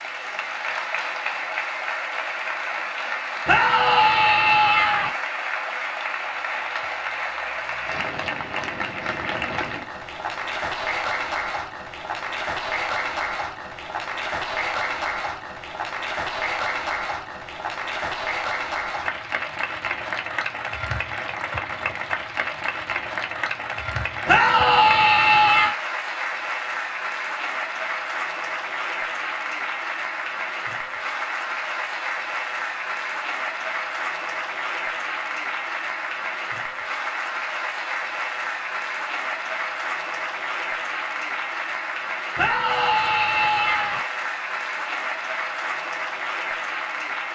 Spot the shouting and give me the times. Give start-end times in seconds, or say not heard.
3.5-5.1, 24.2-25.8, 42.4-44.0.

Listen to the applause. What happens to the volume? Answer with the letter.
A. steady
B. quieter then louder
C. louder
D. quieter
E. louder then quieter
A.